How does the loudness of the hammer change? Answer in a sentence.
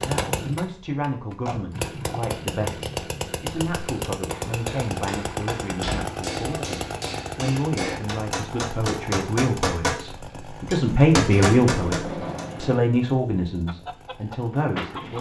The loudness of the hammer goes up.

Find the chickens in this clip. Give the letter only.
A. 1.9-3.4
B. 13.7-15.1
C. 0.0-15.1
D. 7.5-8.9
B.